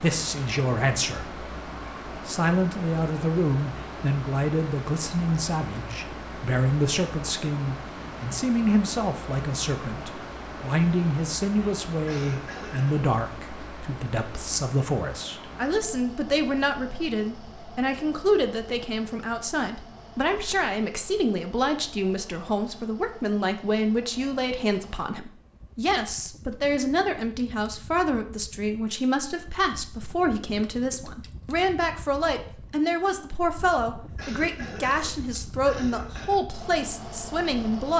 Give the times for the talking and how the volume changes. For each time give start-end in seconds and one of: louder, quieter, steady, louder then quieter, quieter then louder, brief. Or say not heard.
0.0-1.4 brief
2.2-37.9 steady.